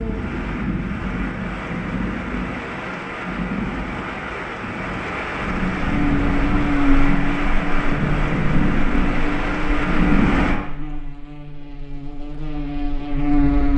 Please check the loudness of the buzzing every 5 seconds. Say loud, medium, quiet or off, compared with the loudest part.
off, loud, loud.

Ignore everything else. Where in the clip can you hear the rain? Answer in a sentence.
The rain can be heard from 0.0 to 10.6 s.